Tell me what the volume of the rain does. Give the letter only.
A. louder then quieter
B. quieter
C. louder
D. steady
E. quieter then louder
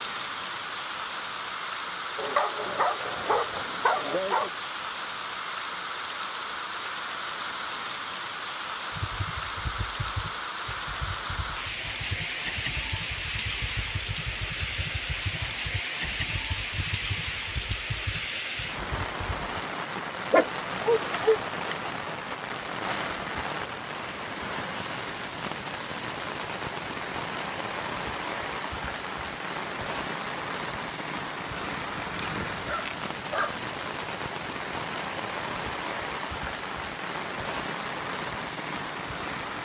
D.